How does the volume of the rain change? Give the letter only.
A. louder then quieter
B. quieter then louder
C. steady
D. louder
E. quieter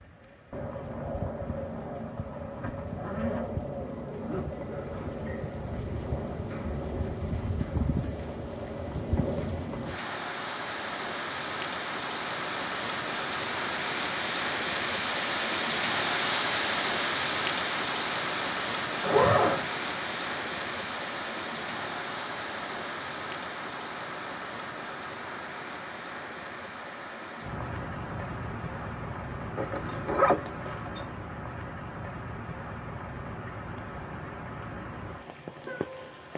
A.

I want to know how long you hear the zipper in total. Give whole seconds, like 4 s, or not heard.
4 s.